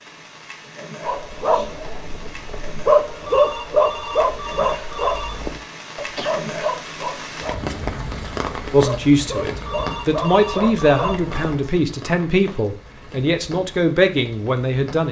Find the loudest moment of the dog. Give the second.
3 s.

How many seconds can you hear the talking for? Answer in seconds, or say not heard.
6 s.